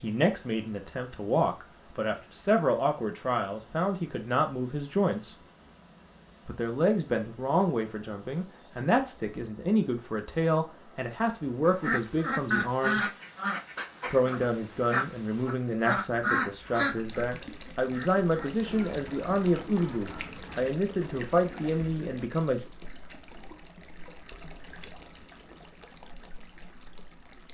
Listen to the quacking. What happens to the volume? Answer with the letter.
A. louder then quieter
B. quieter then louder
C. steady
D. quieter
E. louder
D.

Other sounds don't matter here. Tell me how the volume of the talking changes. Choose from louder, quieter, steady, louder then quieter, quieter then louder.
steady.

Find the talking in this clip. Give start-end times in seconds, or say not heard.
0.0-5.3, 6.5-13.1, 14.1-22.6.